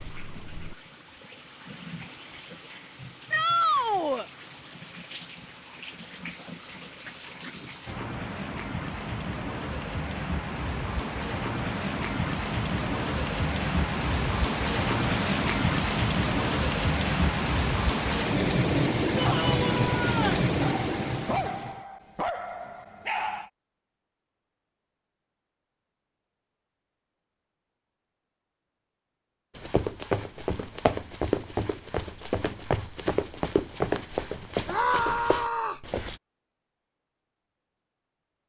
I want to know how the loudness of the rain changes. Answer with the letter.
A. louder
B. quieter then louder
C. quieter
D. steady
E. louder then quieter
A.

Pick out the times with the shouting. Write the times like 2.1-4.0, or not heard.
3.3-4.2, 19.1-20.4, 34.6-35.8.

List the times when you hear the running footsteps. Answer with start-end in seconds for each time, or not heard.
29.6-36.2.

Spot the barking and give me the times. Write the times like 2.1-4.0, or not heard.
20.6-23.5.